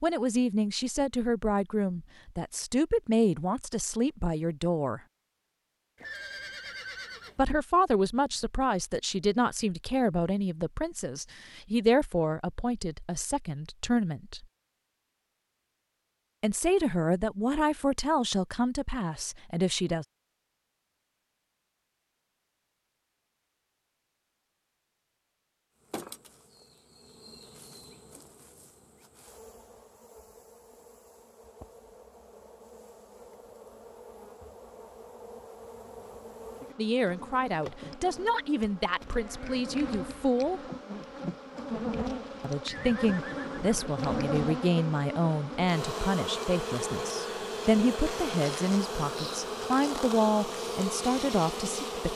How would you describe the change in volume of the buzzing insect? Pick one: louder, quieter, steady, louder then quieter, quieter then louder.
louder.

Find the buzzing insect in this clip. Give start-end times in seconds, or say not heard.
25.8-52.1.